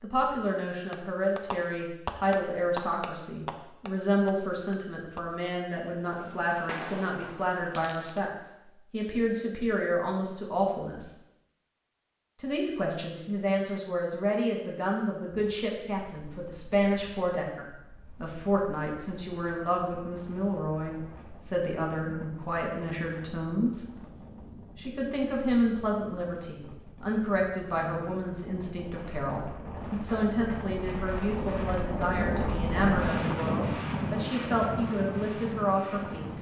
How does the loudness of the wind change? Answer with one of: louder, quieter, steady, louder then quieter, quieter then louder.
louder.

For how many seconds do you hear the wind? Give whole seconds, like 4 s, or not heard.
21 s.